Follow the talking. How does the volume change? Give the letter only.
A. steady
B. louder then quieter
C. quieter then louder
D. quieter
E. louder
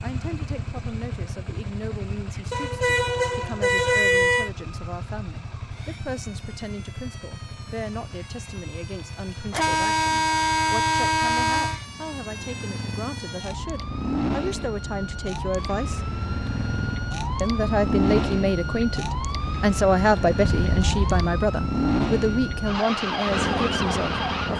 E.